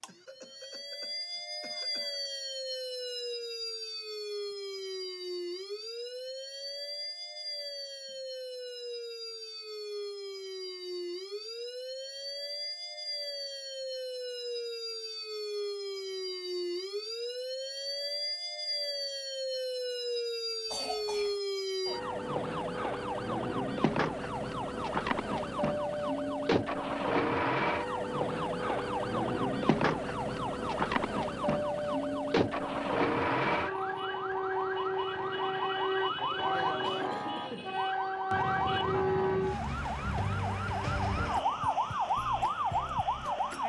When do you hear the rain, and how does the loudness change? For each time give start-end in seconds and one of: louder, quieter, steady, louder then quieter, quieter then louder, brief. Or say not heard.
not heard.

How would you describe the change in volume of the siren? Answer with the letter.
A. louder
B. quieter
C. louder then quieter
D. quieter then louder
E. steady
A.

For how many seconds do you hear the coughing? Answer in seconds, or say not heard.
5 s.